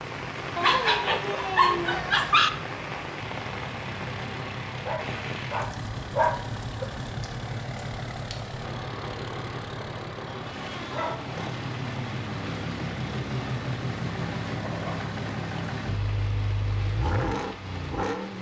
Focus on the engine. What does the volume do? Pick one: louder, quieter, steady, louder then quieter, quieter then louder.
louder.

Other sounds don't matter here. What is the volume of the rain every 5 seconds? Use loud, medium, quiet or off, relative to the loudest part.
loud, loud, medium, medium.